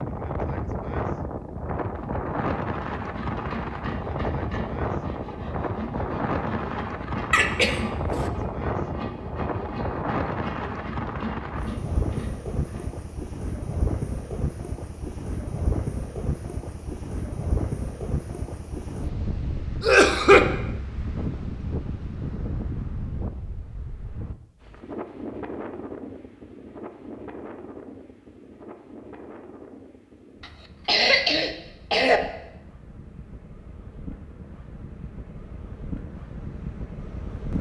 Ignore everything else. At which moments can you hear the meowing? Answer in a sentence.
The meowing can't be heard in this clip.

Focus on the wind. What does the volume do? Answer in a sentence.
The loudness of the wind goes down.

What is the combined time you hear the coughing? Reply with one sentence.
The coughing can be heard for 3 seconds in total.